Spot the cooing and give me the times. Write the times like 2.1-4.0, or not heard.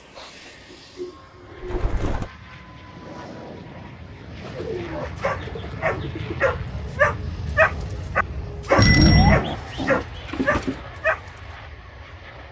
0.1-2.3, 4.4-6.5, 8.7-10.8.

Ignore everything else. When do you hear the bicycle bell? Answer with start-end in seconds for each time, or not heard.
8.8-9.4.